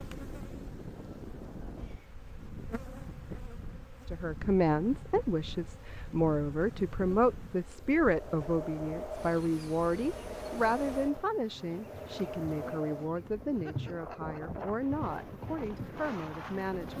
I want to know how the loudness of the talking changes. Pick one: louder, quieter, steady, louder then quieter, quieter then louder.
quieter.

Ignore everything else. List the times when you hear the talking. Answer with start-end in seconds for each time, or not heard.
4.1-16.9.